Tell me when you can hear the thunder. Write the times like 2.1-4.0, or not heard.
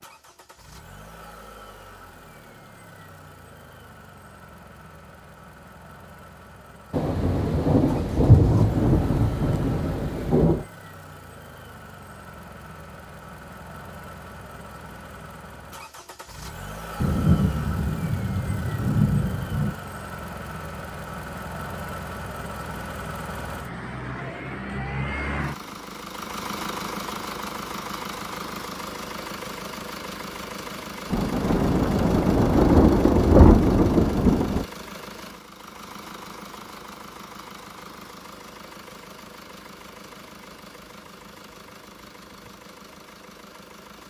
6.9-10.7, 17.0-19.8, 31.1-34.6.